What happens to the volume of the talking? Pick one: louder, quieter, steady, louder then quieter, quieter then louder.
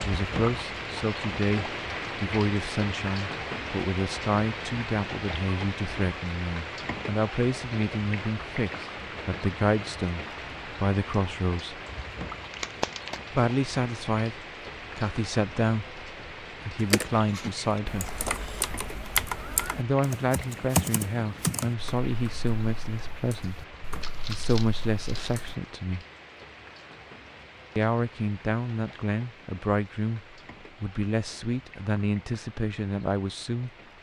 steady.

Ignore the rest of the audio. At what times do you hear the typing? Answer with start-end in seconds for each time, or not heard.
16.8-25.6.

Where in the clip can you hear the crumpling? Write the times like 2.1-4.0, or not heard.
12.5-13.2, 24.0-25.4.